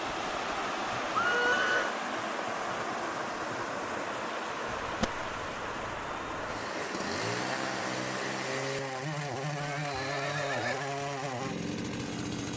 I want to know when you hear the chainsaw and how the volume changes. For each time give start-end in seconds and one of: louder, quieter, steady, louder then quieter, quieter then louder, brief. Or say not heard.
6.4-12.5 steady.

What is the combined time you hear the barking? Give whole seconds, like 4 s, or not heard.
not heard.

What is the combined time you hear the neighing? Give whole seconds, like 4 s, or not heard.
4 s.